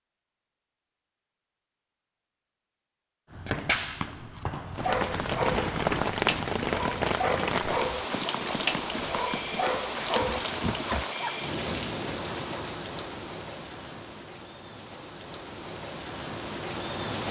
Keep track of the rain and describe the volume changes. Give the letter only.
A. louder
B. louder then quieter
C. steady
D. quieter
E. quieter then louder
D.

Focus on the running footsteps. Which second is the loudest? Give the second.
4 s.